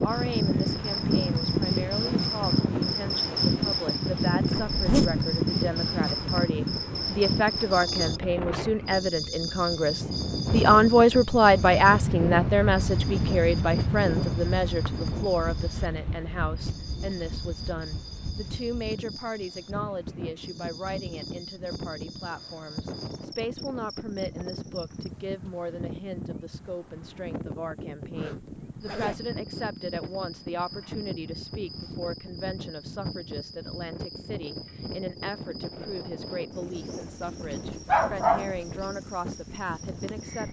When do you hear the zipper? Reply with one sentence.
The zipper can be heard from 4.7 to 5.2 s, from 14.8 to 15.9 s and from 28.1 to 29.2 s.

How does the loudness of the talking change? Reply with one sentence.
The loudness of the talking goes up, then down.